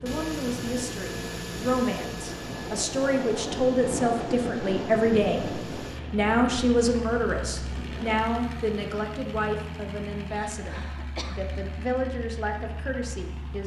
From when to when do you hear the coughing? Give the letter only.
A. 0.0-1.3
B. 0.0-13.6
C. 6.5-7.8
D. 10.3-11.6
D.